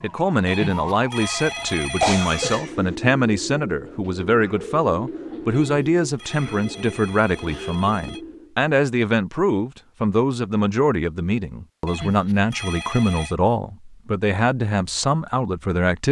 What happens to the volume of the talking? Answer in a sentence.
The loudness of the talking stays about the same.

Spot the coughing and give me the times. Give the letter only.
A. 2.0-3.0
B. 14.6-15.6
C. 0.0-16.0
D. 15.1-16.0
A.